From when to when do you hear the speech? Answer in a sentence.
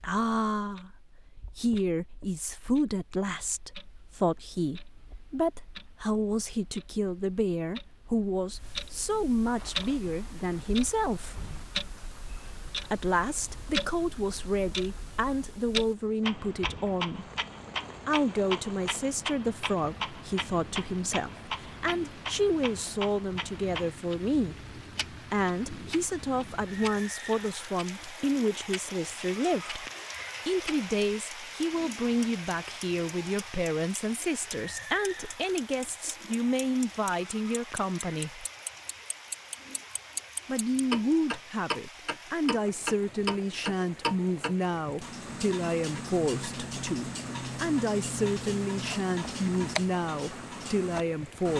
You can hear the speech from 0.0 to 11.4 s, from 12.9 to 17.2 s, from 18.1 to 29.9 s, from 30.4 to 38.5 s and from 40.5 to 51.5 s.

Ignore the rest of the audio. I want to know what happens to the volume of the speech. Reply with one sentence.
The volume of the speech stays about the same.